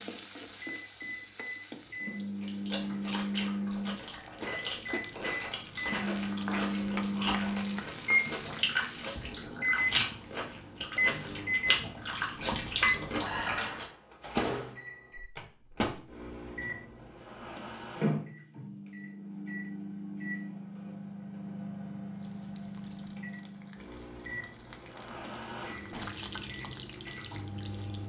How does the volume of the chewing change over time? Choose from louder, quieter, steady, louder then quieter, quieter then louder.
louder.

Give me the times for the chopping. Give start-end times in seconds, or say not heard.
not heard.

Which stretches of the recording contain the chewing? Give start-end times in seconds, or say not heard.
2.4-13.8.